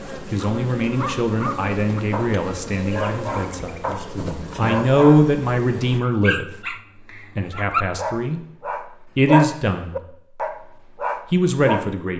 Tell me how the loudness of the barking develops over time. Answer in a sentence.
The loudness of the barking goes up.